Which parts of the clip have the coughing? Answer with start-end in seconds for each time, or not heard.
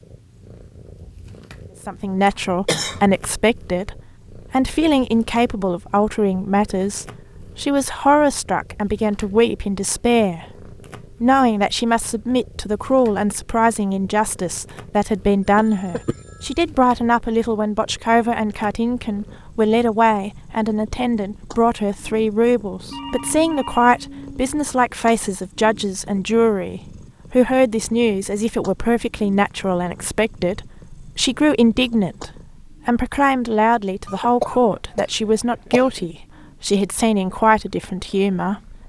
2.2-3.2, 15.6-16.1, 34.0-36.1.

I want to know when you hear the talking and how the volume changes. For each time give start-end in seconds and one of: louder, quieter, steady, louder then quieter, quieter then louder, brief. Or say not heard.
1.9-38.8 steady.